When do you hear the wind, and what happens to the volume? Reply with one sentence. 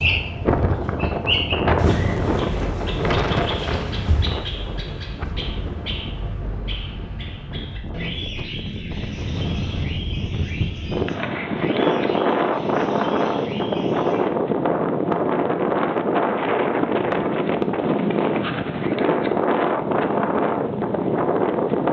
The wind can be heard from 0.0 to 21.8 s, getting quieter then louder.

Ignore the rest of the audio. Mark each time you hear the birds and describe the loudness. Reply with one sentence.
The birds can be heard from 0.0 to 14.3 s, getting quieter.